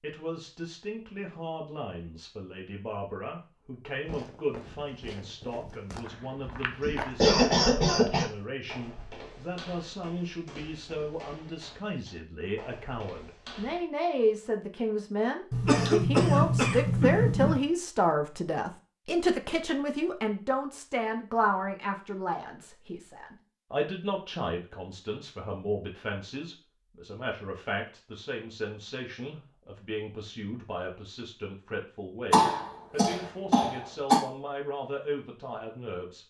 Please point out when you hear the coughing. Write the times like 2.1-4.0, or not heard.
6.8-8.2, 15.5-17.6, 32.3-34.2.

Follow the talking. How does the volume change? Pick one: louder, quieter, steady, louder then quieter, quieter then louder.
louder then quieter.